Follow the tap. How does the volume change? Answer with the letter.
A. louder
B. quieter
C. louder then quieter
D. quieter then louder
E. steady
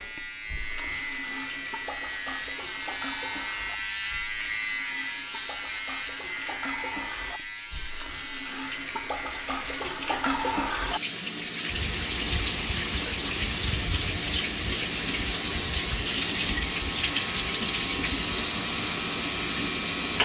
A.